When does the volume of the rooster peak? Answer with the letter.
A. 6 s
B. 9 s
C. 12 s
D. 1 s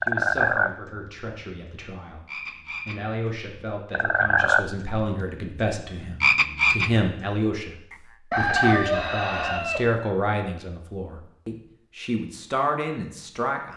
B.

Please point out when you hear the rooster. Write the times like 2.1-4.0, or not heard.
8.3-9.9.